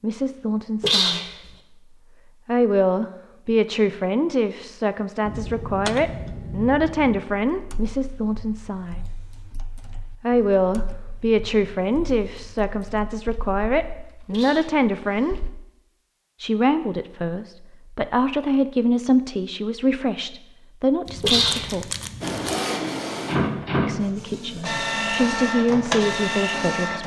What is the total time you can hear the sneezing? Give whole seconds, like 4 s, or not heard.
2 s.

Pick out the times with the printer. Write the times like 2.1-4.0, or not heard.
22.2-27.0.